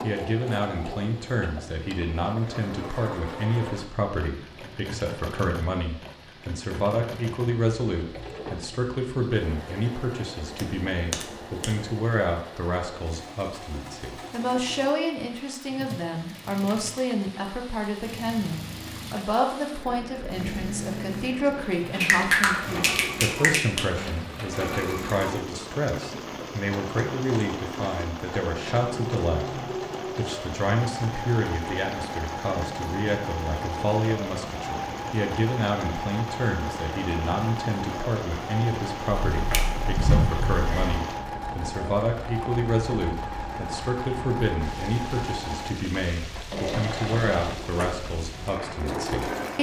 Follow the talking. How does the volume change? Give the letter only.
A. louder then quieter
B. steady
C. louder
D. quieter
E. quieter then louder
B.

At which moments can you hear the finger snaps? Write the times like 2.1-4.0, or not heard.
10.4-11.9, 22.0-23.9, 39.3-41.0.